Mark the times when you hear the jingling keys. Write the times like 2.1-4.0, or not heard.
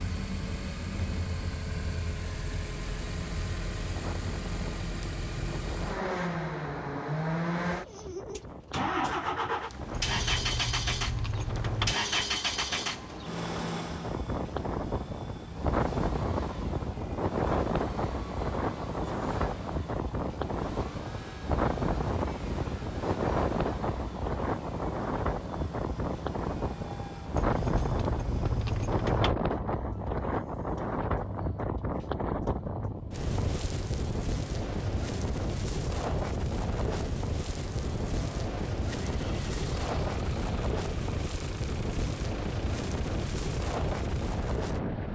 9.9-11.9, 27.4-29.4.